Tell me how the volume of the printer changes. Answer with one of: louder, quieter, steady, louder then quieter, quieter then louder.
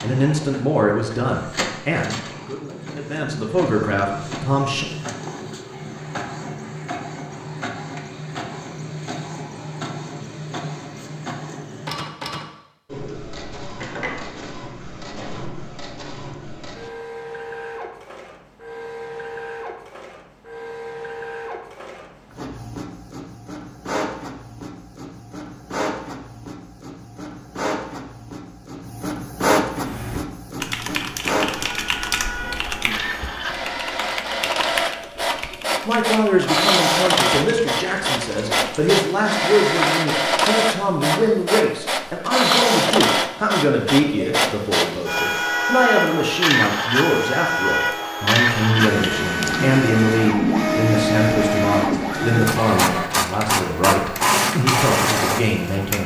louder.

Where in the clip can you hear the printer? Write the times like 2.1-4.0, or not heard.
0.0-56.0.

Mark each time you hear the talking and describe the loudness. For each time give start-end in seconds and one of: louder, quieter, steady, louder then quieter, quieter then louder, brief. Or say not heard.
0.0-4.8 quieter then louder
35.9-56.0 steady.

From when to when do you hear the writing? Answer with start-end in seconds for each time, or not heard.
not heard.